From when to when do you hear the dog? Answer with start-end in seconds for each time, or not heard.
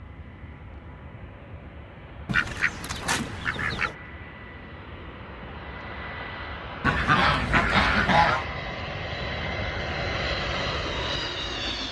not heard.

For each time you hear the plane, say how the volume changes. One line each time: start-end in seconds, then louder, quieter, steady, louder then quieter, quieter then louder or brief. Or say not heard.
0.0-11.8 louder.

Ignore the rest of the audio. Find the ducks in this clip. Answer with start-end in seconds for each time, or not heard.
2.2-4.0, 6.8-8.4.